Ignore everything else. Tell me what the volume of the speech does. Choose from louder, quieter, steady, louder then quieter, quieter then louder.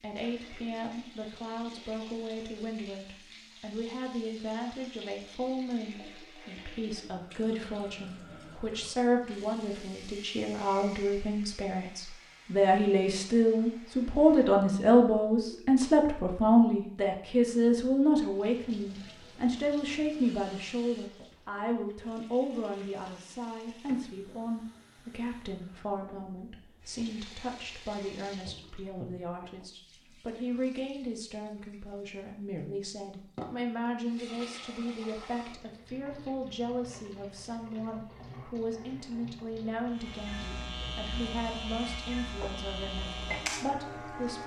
louder then quieter.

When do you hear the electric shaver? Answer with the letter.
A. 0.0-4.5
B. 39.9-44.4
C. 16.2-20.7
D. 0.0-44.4
B.